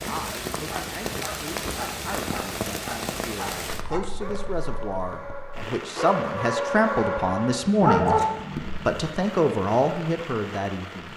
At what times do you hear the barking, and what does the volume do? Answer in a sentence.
You can hear the barking from 0.7 to 9.1 s, getting louder.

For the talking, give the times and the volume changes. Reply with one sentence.
You can hear the talking from 0.0 to 11.1 s, getting louder.